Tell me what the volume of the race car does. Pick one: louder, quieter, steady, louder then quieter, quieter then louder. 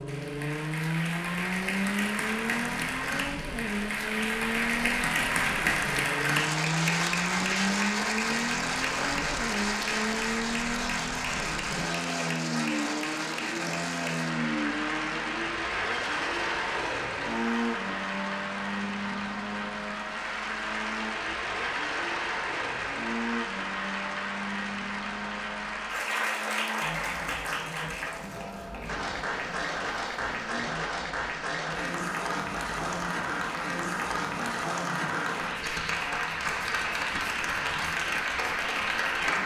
quieter.